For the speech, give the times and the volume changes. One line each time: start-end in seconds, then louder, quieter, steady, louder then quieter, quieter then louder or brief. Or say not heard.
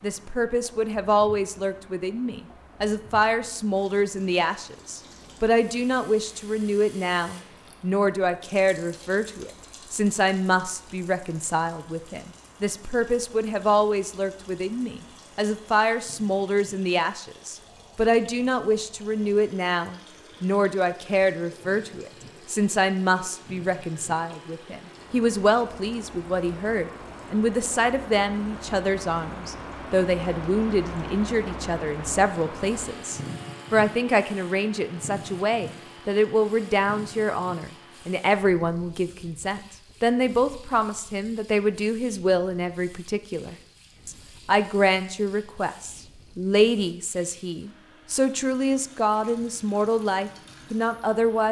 0.0-51.4 steady.